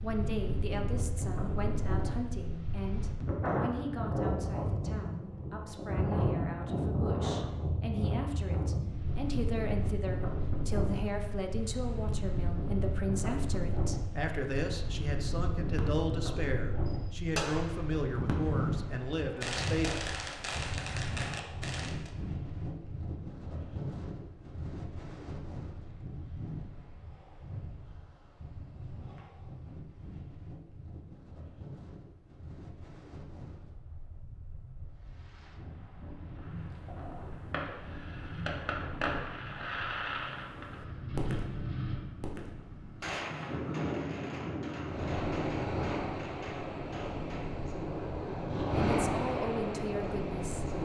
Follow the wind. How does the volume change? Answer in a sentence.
The volume of the wind goes down, then up.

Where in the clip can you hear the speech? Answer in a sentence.
You can hear the speech from 0.0 to 19.9 s and from 48.6 to 50.6 s.